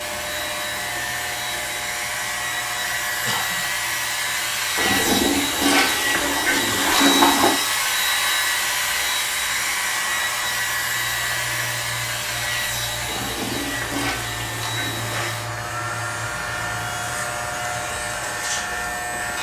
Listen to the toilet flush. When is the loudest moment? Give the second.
7 s.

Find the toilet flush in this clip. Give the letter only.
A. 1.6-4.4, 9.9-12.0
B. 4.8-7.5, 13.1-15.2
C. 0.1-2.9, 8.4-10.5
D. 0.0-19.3
B.